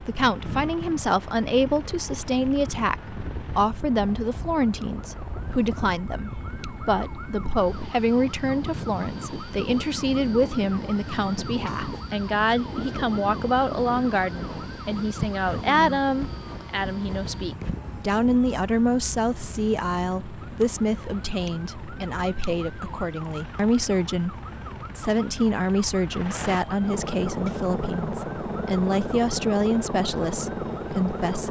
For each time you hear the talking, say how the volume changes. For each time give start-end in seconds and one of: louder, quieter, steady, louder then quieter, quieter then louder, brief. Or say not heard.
0.0-31.4 steady.